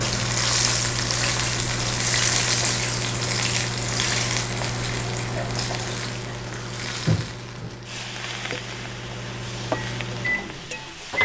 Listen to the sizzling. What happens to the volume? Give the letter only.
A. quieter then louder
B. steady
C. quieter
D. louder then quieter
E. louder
C.